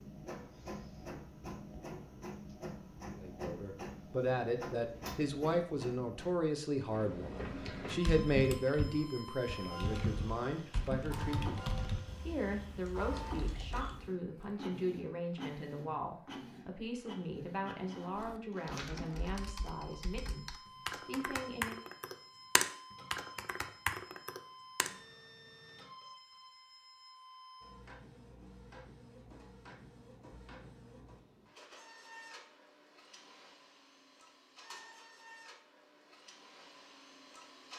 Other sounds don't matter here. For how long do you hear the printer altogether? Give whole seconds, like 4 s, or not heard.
38 s.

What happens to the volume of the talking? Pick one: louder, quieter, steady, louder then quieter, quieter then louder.
quieter.